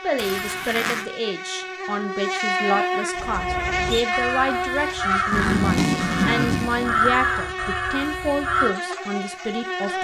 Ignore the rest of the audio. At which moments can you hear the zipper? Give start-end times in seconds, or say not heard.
0.1-1.1, 5.3-7.3.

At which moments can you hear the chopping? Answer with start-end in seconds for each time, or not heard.
not heard.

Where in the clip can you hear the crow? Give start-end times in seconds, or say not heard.
3.1-8.8.